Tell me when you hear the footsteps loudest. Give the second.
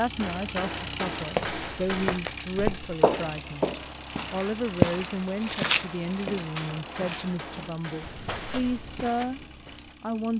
5 s.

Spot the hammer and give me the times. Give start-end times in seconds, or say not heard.
0.1-2.2, 6.8-8.5.